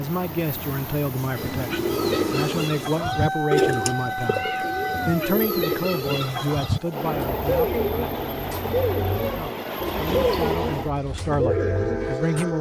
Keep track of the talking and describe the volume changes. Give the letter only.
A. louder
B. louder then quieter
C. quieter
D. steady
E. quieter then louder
E.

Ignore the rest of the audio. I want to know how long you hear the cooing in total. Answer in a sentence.
The cooing can be heard for 11 seconds in total.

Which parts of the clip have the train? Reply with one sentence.
The train can be heard from 0.0 to 12.5 s.